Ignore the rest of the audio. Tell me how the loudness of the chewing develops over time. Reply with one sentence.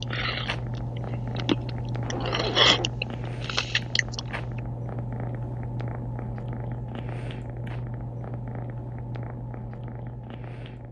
The loudness of the chewing goes up, then down.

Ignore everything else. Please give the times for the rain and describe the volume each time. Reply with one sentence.
The rain can't be heard in this clip.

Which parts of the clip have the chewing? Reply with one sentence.
You can hear the chewing from 0.0 to 4.6 s.